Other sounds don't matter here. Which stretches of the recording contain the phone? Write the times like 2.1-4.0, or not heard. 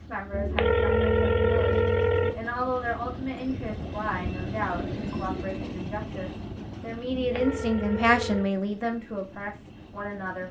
0.3-2.4, 7.1-8.4.